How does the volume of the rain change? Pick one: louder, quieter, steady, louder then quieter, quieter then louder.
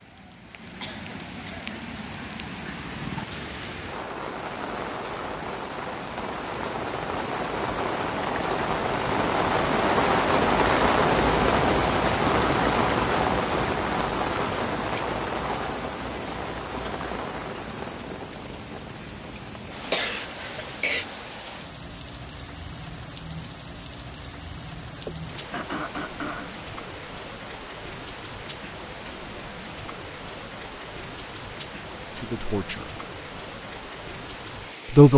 louder then quieter.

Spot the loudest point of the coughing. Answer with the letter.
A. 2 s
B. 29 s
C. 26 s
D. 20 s
D.